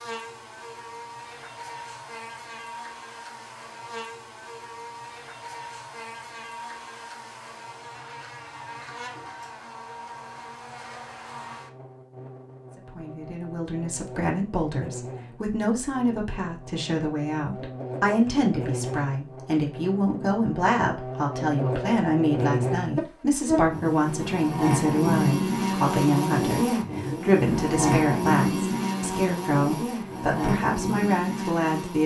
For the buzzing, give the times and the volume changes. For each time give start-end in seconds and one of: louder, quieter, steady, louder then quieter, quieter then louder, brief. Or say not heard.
0.0-32.0 louder.